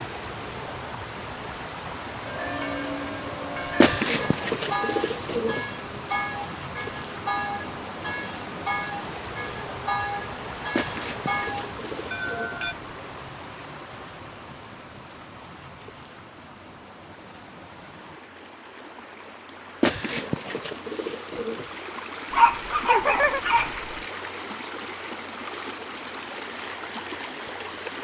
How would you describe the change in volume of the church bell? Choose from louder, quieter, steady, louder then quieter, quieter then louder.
steady.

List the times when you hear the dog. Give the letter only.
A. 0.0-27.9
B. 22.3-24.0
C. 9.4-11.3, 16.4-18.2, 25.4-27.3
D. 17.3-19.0
B.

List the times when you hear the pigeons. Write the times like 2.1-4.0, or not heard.
3.8-5.7, 10.8-12.6, 19.8-21.6.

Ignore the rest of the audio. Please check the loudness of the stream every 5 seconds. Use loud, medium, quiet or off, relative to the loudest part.
loud, loud, loud, medium, loud, loud.